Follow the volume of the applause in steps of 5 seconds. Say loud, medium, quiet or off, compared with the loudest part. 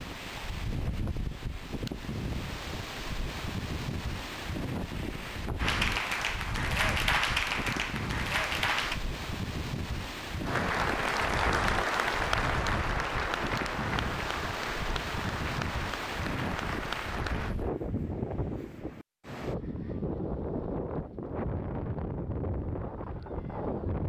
off, loud, loud, medium, off.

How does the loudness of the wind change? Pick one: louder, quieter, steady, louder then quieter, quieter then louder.
steady.